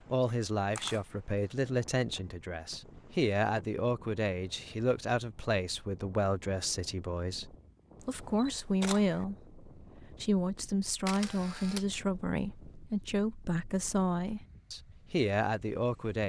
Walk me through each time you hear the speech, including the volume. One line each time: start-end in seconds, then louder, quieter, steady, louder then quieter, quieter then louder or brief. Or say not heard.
0.1-16.2 steady.